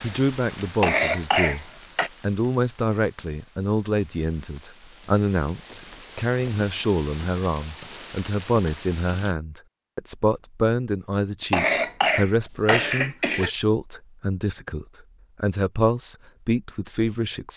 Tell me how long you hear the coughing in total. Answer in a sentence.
You can hear the coughing for 3 seconds altogether.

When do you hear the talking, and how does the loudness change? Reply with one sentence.
You can hear the talking from 0.0 to 17.5 s, at a steady volume.